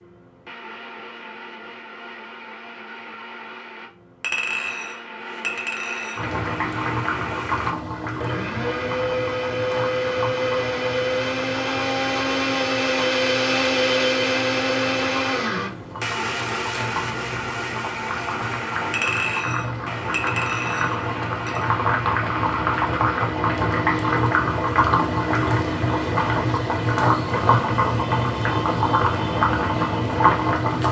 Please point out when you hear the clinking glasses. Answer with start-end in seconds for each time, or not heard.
4.2-6.3, 18.9-21.6.